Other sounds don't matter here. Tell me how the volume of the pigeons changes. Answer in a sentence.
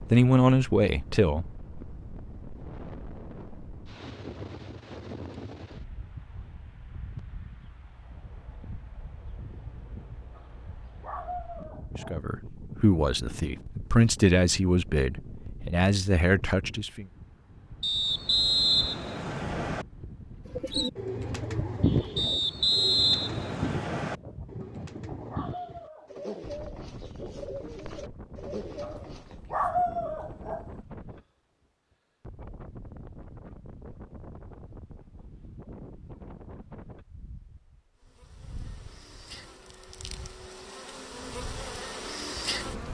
The volume of the pigeons goes down.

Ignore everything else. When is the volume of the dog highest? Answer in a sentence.
The loudest moment of the dog is at 30 seconds.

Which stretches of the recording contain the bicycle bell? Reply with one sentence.
You can't hear the bicycle bell here.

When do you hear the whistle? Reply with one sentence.
The whistle can be heard from 17.8 to 19.9 s and from 22.1 to 24.1 s.